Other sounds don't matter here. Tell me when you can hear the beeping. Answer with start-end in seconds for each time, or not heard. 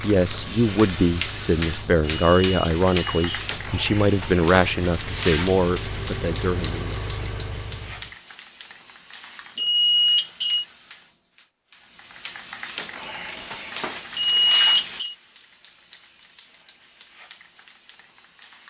2.1-3.5, 9.6-10.7, 14.2-15.2.